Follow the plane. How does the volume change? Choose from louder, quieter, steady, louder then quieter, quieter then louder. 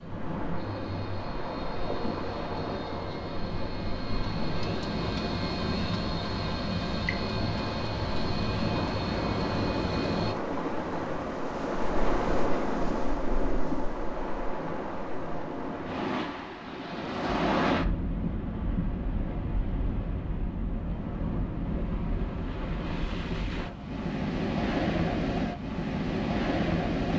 louder.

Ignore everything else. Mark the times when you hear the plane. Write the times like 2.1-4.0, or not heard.
0.0-10.3.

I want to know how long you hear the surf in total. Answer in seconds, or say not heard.
27 s.